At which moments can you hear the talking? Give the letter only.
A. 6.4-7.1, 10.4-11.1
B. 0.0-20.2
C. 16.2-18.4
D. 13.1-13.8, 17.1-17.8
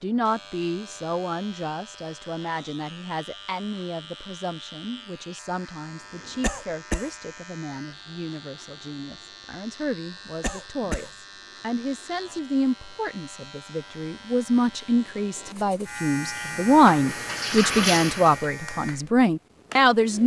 B.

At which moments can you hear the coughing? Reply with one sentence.
You can hear the coughing from 6.4 to 7.1 s and from 10.4 to 11.1 s.